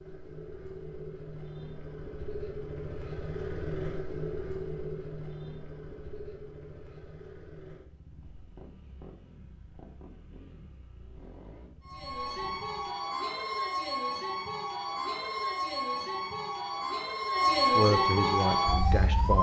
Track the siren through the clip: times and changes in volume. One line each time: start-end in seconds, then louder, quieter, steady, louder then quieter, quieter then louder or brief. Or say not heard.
11.8-19.3 louder.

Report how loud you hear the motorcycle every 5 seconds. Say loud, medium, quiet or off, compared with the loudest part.
loud, medium, quiet, off.